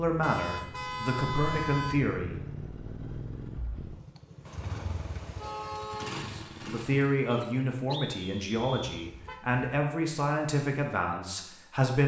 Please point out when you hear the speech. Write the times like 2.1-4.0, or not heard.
0.0-2.4, 6.3-12.0.